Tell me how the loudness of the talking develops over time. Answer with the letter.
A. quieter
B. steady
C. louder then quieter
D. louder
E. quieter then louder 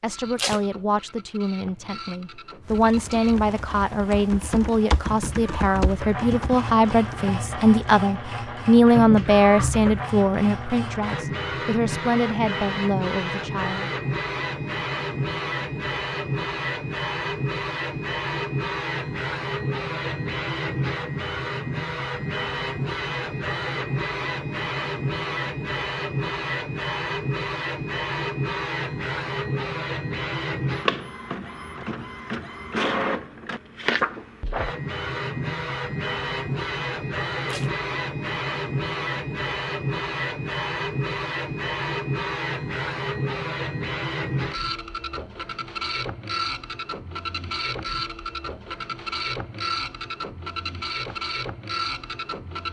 C.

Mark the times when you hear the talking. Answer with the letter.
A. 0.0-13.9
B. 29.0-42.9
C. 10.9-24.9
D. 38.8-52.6
A.